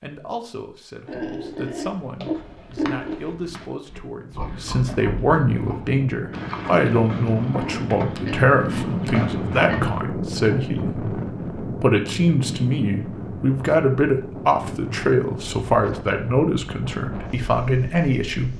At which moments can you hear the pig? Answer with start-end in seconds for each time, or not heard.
1.1-10.0.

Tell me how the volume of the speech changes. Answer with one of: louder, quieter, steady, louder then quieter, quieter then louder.
louder.